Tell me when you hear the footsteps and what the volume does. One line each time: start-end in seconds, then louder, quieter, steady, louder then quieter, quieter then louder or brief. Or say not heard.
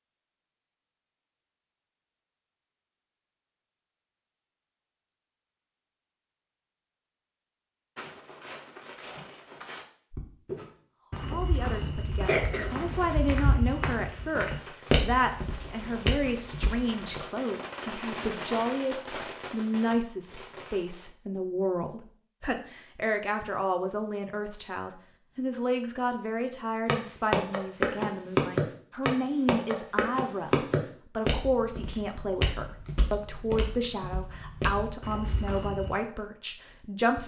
8.0-17.2 louder then quieter
26.9-36.0 quieter.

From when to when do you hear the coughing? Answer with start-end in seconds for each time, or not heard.
12.2-13.7.